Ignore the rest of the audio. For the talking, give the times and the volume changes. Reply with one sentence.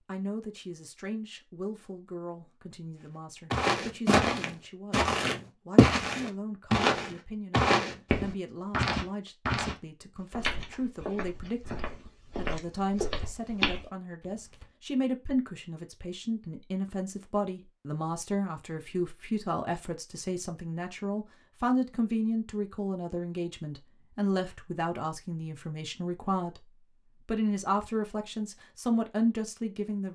The talking can be heard from 0.1 to 30.1 s, getting louder.